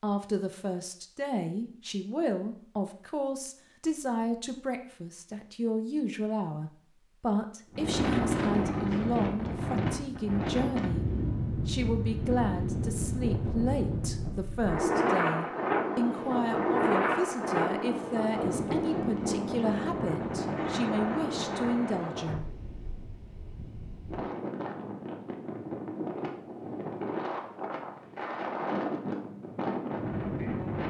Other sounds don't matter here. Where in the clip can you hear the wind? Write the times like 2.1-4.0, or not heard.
7.7-30.8.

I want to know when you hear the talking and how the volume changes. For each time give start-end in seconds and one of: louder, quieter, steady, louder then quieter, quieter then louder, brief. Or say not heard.
0.0-11.1 steady
11.7-22.5 steady.